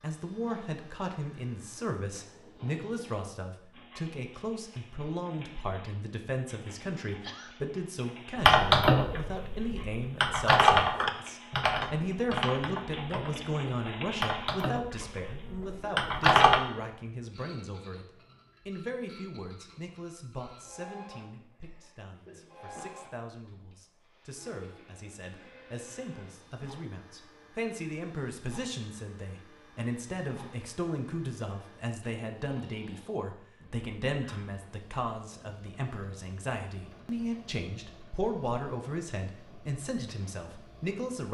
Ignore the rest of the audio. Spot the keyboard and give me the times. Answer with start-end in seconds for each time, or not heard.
8.3-16.6.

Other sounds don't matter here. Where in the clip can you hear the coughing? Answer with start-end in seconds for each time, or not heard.
7.2-7.7, 21.3-23.0.